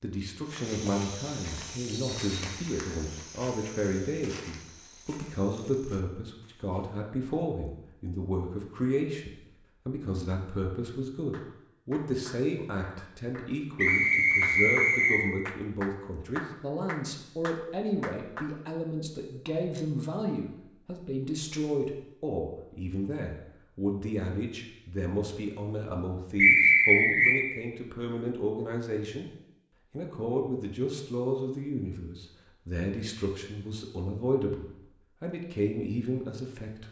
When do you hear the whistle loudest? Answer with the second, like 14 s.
27 s.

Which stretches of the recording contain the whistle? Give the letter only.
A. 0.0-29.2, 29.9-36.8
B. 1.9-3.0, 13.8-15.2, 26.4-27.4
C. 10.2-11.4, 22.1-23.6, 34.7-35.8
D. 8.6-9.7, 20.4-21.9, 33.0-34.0
B.